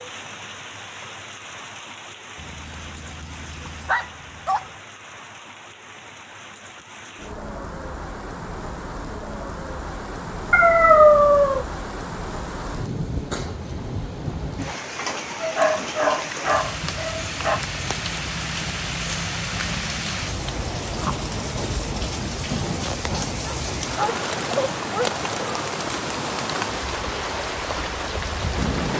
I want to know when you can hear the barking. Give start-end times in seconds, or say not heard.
2.4-4.7, 10.5-11.7, 15.4-17.6, 23.4-25.1.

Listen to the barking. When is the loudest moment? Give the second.
11 s.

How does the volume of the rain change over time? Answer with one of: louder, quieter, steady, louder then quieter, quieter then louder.
louder.